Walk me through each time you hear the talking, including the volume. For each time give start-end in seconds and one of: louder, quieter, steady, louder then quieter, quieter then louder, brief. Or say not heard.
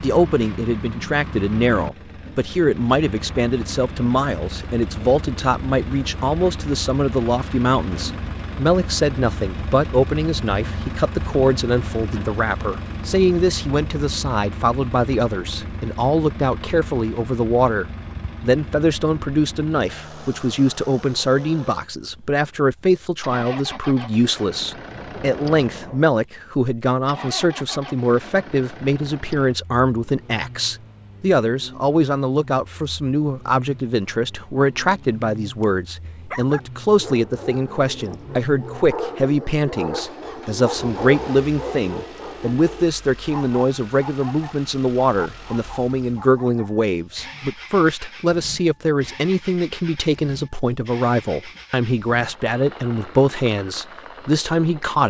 0.0-55.0 steady.